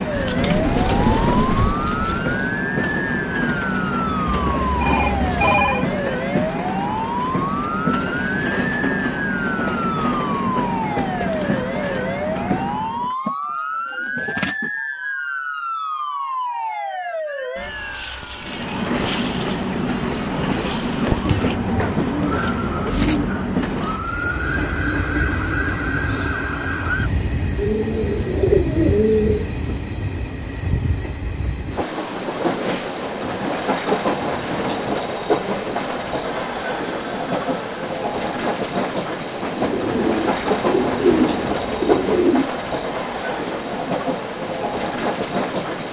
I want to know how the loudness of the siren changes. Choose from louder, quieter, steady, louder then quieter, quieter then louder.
steady.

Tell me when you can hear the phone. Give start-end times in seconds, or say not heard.
4.0-5.8, 36.2-37.8.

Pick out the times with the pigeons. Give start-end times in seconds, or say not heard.
0.1-2.5, 12.9-14.7, 21.2-23.2, 27.6-29.9, 39.5-42.5.